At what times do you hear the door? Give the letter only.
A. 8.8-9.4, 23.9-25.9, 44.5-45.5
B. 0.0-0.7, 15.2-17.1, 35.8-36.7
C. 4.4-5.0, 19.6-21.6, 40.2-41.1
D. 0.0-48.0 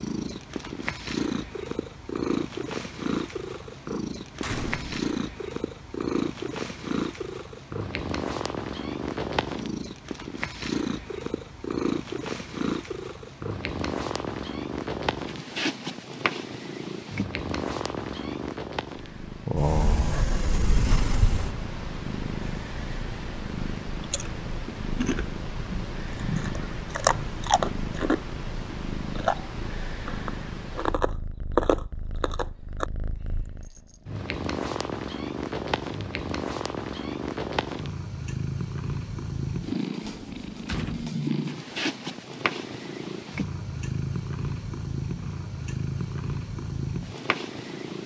C.